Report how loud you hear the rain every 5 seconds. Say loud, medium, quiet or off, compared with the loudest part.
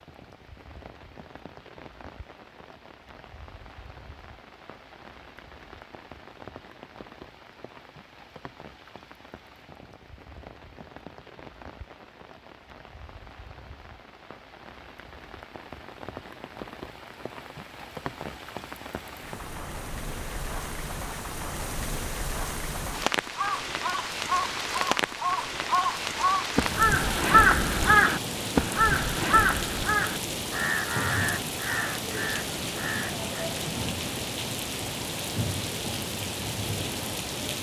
quiet, quiet, quiet, medium, loud, loud, loud, loud.